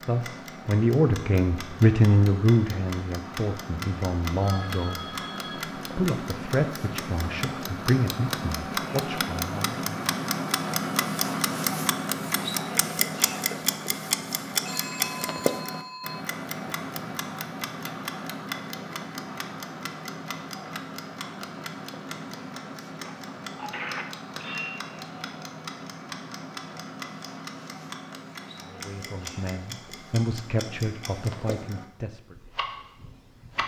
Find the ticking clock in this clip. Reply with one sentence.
The ticking clock can be heard from 0.0 to 33.6 s.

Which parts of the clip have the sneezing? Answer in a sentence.
You can't hear the sneezing here.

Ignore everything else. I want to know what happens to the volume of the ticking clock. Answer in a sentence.
The volume of the ticking clock goes up, then down.